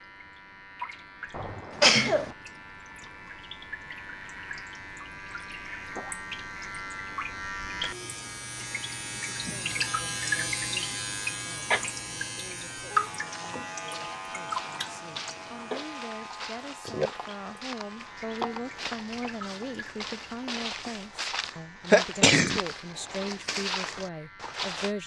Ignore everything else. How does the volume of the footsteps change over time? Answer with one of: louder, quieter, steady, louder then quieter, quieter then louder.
louder.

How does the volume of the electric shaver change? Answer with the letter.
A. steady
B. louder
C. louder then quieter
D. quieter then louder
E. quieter
C.